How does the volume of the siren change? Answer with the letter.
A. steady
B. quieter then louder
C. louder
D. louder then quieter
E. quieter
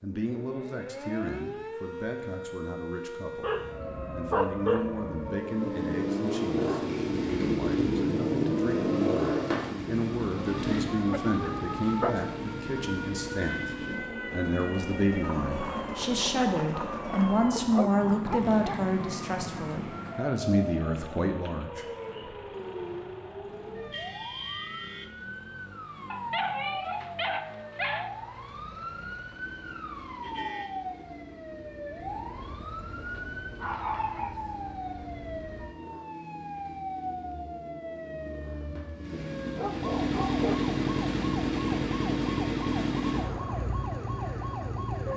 A.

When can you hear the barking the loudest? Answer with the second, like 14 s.
5 s.